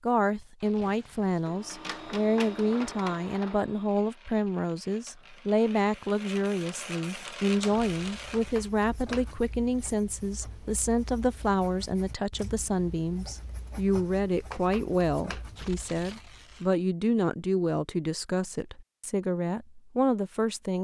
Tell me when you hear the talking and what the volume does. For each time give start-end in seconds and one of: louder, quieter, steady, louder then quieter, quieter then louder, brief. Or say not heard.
0.0-20.7 steady.